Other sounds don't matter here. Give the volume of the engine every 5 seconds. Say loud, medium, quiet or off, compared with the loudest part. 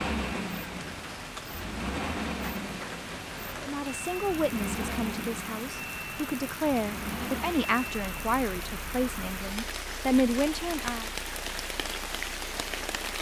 loud, loud, quiet.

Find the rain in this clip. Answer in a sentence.
You can hear the rain from 0.1 to 13.1 s.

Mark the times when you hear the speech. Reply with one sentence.
The speech can be heard from 3.6 to 11.1 s.